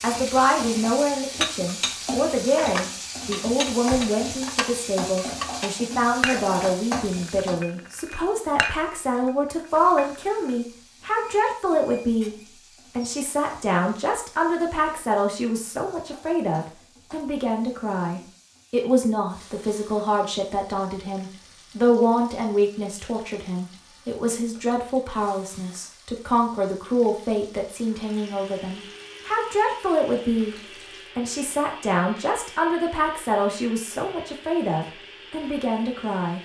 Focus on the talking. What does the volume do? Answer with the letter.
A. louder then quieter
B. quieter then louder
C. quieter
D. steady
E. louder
D.